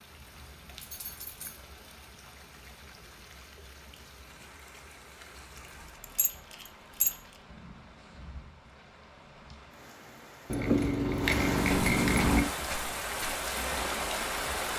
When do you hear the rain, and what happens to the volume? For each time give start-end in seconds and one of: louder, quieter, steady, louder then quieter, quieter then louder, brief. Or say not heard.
0.0-14.7 louder.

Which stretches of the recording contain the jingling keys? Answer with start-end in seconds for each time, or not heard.
0.8-1.6, 6.0-7.2, 10.4-12.4.